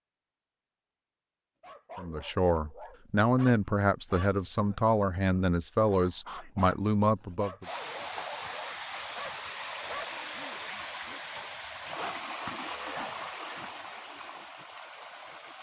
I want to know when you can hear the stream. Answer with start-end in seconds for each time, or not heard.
7.6-15.5.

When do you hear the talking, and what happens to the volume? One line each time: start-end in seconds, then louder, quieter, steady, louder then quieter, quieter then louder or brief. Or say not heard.
1.9-7.7 steady.